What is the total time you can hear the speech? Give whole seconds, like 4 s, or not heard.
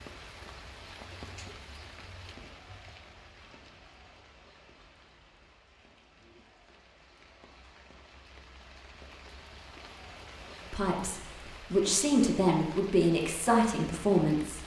4 s.